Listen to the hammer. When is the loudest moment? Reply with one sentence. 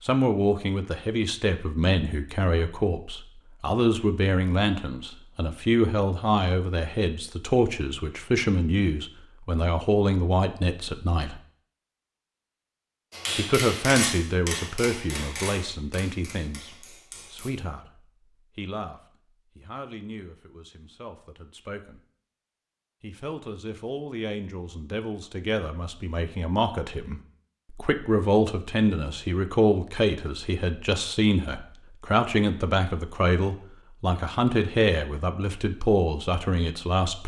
The volume of the hammer peaks at 14 seconds.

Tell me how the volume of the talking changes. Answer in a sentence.
The volume of the talking goes down, then up.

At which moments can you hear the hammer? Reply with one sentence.
You can hear the hammer from 13.1 to 17.5 s.